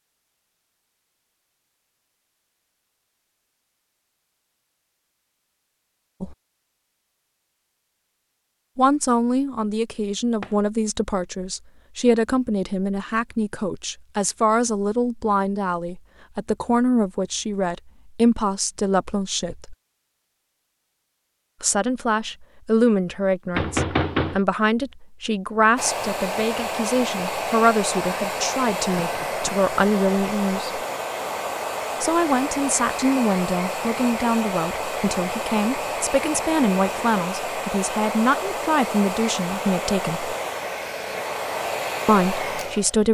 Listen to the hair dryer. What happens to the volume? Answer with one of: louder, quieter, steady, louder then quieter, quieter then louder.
steady.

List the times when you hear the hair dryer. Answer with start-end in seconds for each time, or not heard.
25.8-43.0.